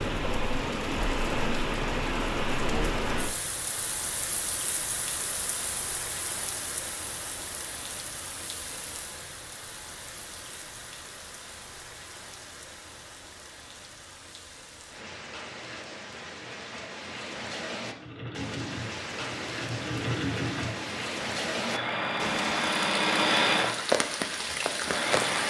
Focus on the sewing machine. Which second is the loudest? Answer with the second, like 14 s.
23 s.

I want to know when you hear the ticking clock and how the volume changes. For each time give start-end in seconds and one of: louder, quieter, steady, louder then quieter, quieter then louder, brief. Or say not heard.
not heard.